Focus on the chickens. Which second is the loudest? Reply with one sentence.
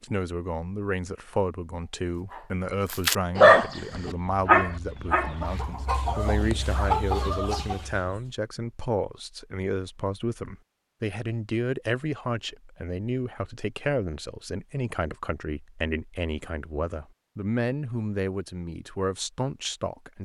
The volume of the chickens peaks at 7 seconds.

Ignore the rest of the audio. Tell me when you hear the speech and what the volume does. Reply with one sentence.
The speech can be heard from 0.0 to 20.1 s, at a steady volume.